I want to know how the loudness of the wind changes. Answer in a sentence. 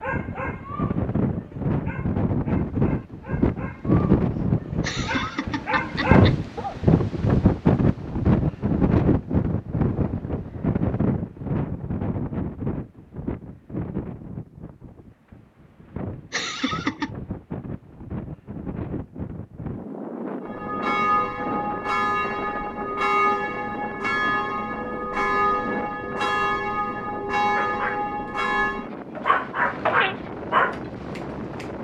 The loudness of the wind goes down.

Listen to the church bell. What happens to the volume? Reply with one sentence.
The volume of the church bell stays about the same.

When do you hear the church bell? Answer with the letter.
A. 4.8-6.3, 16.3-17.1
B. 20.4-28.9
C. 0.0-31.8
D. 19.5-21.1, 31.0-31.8
B.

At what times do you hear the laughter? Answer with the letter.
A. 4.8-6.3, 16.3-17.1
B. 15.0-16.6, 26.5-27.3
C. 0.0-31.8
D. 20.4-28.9
A.